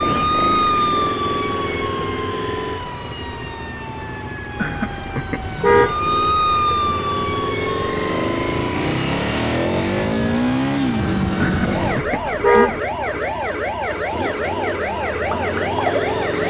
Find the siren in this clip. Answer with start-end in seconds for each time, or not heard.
0.0-16.4.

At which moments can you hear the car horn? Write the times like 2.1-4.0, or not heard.
4.5-6.0, 11.4-12.8.